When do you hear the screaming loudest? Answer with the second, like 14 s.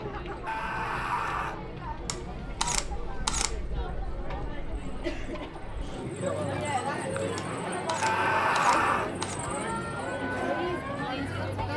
9 s.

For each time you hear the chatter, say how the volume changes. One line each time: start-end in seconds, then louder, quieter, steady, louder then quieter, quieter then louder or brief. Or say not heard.
0.0-11.7 louder.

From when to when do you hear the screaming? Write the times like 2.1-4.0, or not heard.
0.5-1.6, 8.0-9.1.